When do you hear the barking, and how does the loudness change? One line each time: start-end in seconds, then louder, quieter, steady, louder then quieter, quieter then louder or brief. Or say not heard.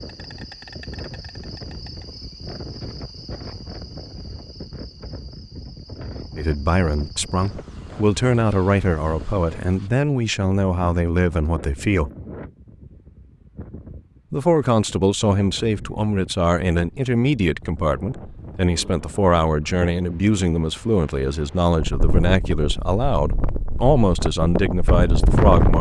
not heard.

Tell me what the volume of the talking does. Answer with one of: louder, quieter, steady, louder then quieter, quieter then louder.
steady.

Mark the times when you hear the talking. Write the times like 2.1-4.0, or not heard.
6.3-12.1, 14.3-25.7.